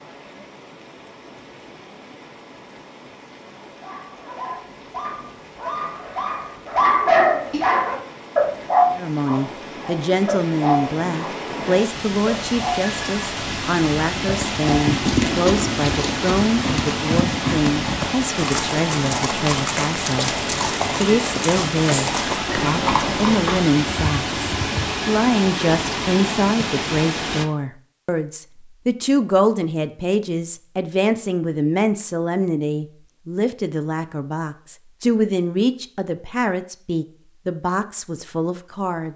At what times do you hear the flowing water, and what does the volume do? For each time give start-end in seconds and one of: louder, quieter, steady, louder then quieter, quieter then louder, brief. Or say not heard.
0.0-27.4 louder.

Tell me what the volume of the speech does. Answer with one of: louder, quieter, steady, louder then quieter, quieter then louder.
steady.